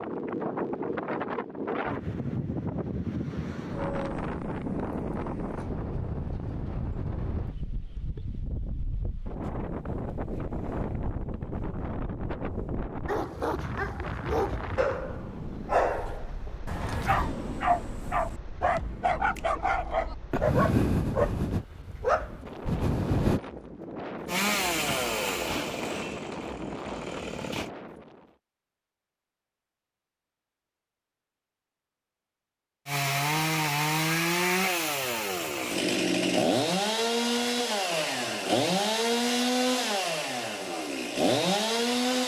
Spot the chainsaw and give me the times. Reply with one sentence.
You can hear the chainsaw from 24.2 to 27.7 s and from 32.9 to 42.2 s.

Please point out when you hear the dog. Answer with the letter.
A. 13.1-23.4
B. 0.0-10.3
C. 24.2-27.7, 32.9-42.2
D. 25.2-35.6
A.